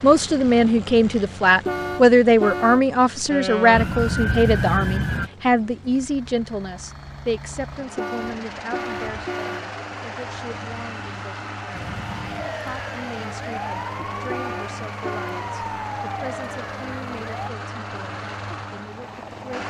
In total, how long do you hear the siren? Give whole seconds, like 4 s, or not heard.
8 s.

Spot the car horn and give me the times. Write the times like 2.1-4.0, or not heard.
1.6-2.9, 8.0-9.7, 14.3-15.4.